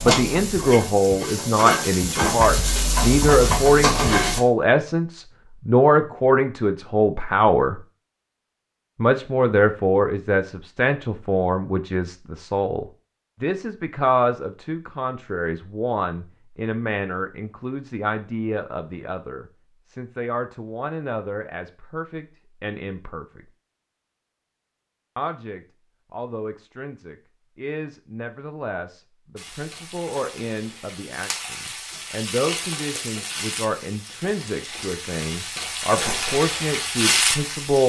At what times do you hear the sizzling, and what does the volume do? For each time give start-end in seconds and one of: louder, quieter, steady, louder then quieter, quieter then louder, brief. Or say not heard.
0.0-4.4 louder
29.4-37.8 louder.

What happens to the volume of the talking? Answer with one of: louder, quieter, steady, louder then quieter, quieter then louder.
quieter then louder.